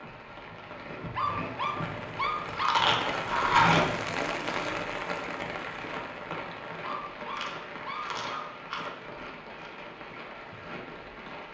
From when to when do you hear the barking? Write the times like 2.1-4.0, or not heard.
1.1-2.8, 6.8-8.4.